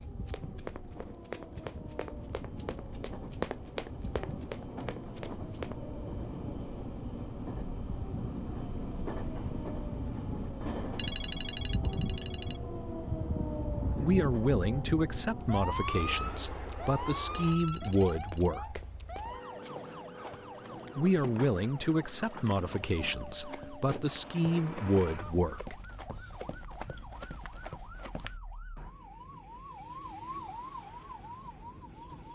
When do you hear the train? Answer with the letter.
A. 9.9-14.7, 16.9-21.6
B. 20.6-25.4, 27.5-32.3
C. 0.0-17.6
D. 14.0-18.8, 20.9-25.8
C.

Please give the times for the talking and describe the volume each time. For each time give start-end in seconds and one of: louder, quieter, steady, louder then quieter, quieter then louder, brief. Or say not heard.
14.0-18.8 quieter then louder
20.9-25.8 quieter then louder.